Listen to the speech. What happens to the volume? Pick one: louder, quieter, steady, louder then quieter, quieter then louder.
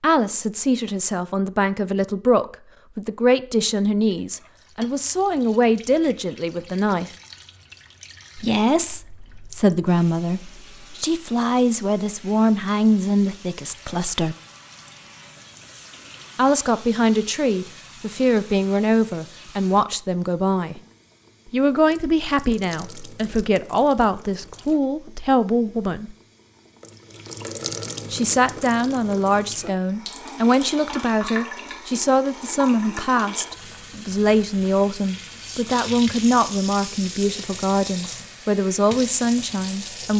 steady.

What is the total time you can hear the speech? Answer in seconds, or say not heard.
34 s.